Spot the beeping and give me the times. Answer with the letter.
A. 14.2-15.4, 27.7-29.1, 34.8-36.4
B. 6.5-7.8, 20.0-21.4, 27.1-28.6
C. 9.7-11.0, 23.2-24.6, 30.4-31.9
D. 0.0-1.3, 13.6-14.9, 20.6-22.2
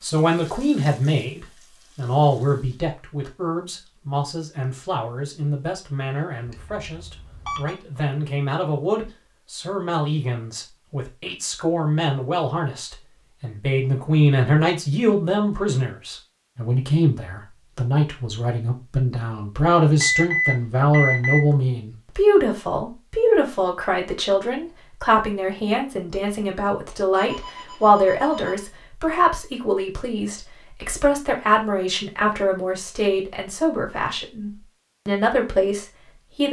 B.